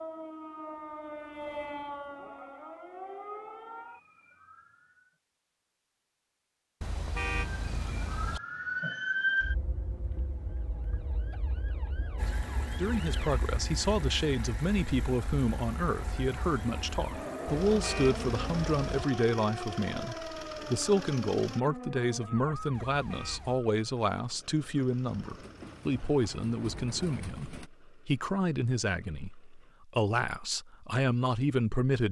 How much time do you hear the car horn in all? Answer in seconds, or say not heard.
4 s.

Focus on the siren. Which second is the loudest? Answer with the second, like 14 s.
9 s.